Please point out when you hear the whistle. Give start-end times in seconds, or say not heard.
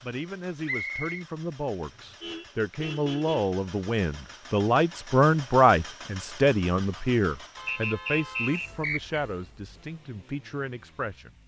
0.7-1.2, 7.7-9.2.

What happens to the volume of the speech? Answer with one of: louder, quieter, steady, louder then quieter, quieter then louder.
louder then quieter.